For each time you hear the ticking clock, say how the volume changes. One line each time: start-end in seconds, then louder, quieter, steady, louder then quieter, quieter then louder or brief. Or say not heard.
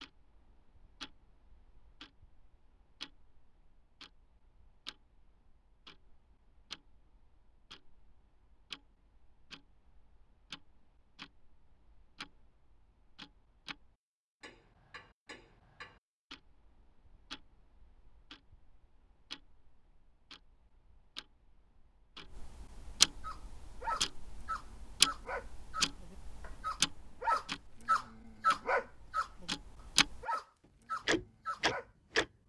0.0-30.2 louder
31.1-32.2 brief.